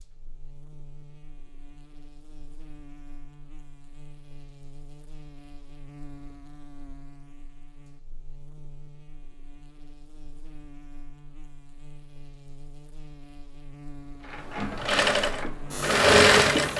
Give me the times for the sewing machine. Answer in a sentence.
You can hear the sewing machine from 14.3 to 16.7 s.